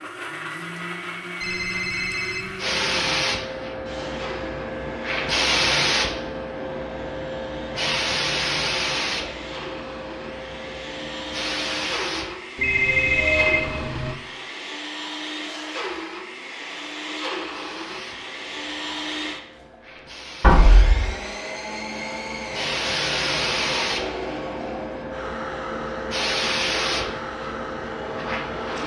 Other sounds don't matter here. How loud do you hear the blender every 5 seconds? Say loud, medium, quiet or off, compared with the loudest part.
loud, medium, loud, loud, loud, loud.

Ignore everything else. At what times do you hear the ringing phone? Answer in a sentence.
The ringing phone can be heard from 1.4 to 2.5 s, from 12.6 to 14.2 s and from 20.4 to 21.1 s.